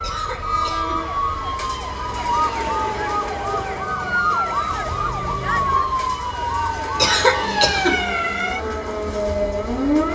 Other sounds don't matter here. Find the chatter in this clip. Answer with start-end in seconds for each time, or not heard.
not heard.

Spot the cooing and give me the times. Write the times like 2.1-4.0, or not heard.
not heard.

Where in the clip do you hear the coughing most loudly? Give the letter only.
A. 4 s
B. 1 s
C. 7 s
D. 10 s
C.